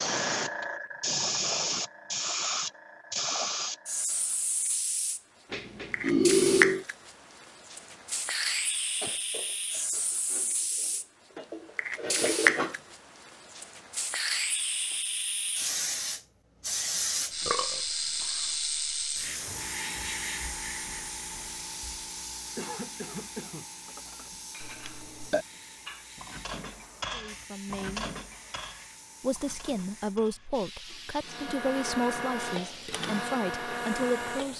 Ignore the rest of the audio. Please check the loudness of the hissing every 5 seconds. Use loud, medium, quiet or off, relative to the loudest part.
loud, loud, loud, loud, medium, quiet, quiet.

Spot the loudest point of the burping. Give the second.
6 s.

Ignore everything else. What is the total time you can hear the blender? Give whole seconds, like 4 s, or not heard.
3 s.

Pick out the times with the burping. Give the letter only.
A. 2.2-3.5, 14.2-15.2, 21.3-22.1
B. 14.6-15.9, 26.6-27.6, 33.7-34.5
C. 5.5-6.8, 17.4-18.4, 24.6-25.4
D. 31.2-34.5
C.